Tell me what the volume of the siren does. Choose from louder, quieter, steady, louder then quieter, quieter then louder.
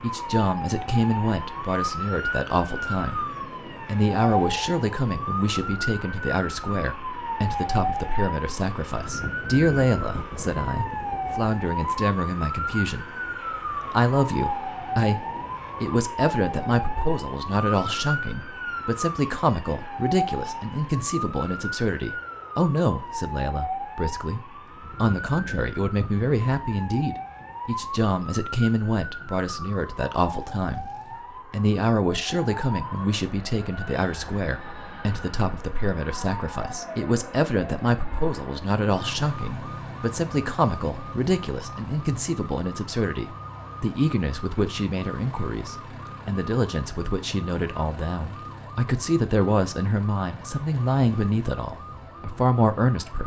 quieter.